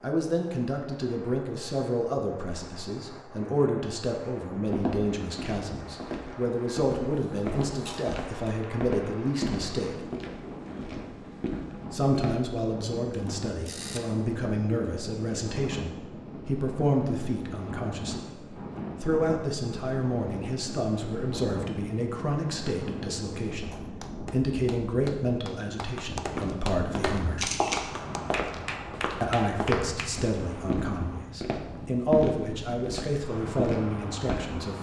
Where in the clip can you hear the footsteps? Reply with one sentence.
The footsteps can be heard from 4.7 to 12.5 s and from 26.3 to 34.4 s.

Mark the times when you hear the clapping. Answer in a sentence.
The clapping can be heard from 23.7 to 30.1 s.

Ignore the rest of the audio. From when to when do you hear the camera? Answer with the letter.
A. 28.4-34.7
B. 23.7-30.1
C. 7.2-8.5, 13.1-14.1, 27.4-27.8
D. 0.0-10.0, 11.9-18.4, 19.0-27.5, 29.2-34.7
C.